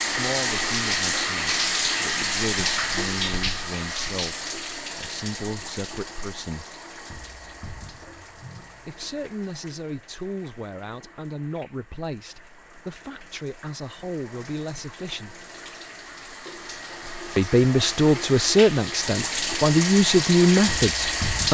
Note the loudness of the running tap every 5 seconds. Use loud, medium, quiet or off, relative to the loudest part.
loud, quiet, quiet, medium, loud.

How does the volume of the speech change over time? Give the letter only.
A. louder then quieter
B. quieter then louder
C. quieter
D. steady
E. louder
E.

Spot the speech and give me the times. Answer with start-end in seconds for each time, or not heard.
0.0-6.7, 8.8-15.4, 17.4-21.4.